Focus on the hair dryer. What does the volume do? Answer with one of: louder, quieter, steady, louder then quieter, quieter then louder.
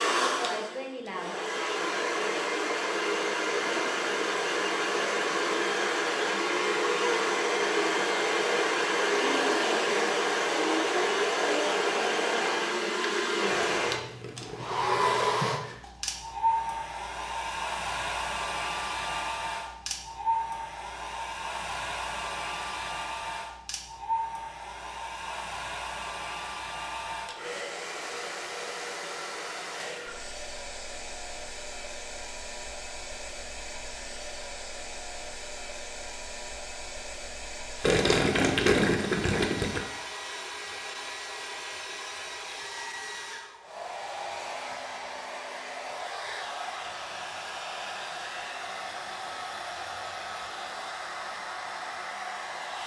quieter.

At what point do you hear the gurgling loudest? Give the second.
39 s.